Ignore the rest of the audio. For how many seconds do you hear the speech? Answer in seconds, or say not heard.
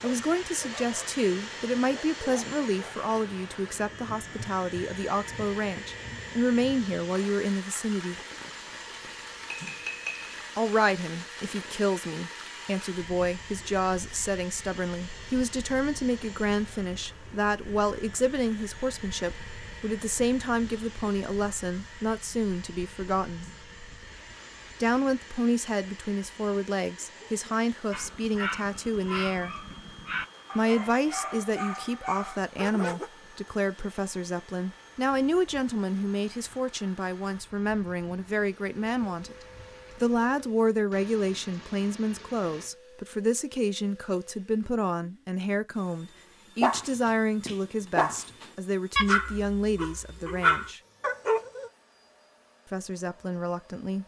47 s.